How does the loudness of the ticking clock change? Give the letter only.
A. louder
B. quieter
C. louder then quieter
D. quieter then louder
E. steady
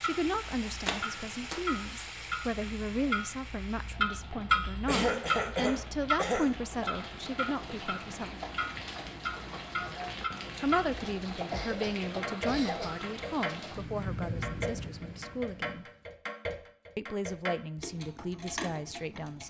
C.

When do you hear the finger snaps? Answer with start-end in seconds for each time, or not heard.
0.8-1.7.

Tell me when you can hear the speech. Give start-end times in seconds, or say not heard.
0.0-8.3, 10.6-15.8, 16.9-19.4.